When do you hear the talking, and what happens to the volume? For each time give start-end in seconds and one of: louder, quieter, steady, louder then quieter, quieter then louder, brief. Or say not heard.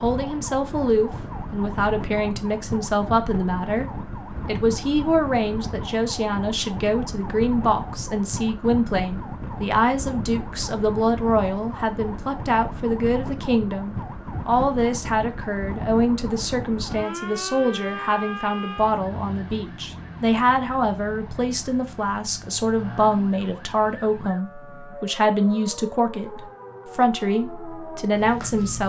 0.0-28.8 steady.